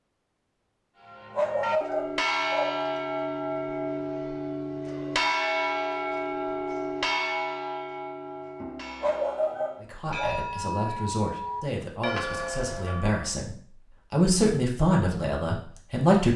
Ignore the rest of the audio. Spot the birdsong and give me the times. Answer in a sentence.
You can't hear the birdsong here.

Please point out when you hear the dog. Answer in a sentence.
The dog can be heard from 1.4 to 2.8 s and from 9.0 to 10.4 s.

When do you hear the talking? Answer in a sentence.
The talking can be heard from 9.8 to 16.3 s.